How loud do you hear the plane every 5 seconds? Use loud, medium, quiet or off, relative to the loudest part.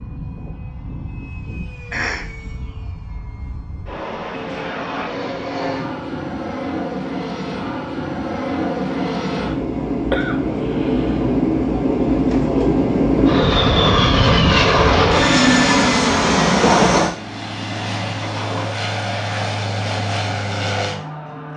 quiet, medium, loud, loud, medium.